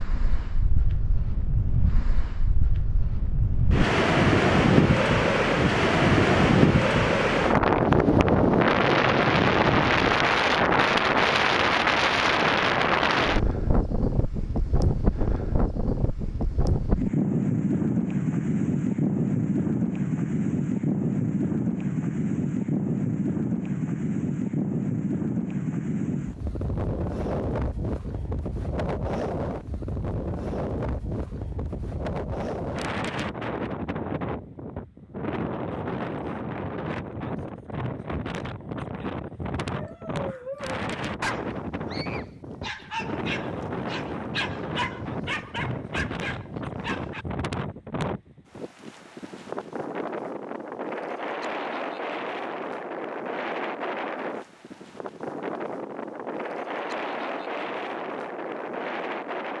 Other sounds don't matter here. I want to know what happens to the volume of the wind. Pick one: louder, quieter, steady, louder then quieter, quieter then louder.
quieter.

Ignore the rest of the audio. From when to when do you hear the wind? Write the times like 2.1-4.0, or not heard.
0.0-59.5.